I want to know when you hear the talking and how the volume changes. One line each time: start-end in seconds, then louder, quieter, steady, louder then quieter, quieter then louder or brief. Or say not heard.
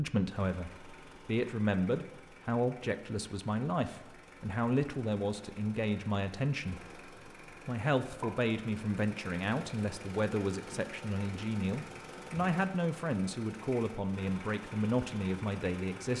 0.0-16.1 steady.